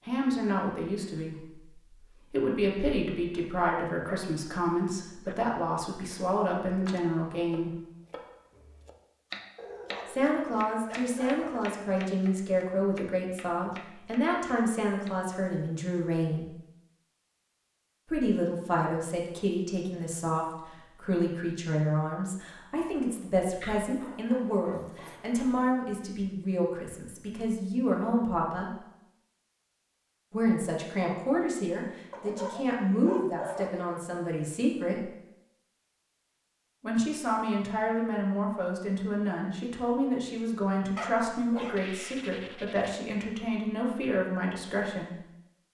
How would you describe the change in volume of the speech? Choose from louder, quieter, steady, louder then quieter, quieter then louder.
steady.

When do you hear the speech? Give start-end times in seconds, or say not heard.
0.1-7.7, 10.1-16.5, 18.1-28.8, 30.3-35.0, 36.8-45.1.